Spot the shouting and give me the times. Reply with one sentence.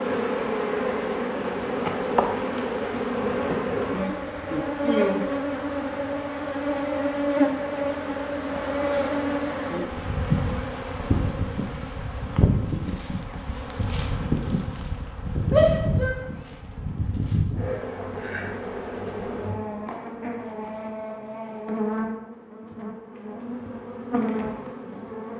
The shouting can be heard from 15.5 to 16.1 s.